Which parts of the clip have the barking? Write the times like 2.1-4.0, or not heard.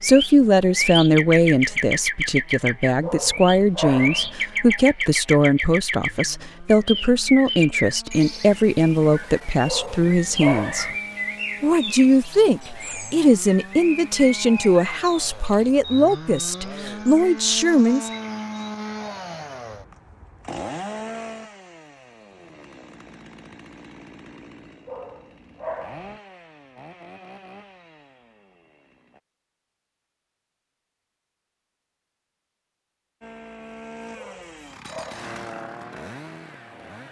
3.0-4.3, 9.7-10.9, 24.9-26.1, 34.1-35.3.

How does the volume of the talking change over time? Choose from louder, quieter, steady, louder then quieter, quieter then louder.
steady.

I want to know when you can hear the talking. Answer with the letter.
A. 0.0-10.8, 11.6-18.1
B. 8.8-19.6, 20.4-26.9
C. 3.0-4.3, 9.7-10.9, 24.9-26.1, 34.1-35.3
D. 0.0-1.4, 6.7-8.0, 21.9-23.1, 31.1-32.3
A.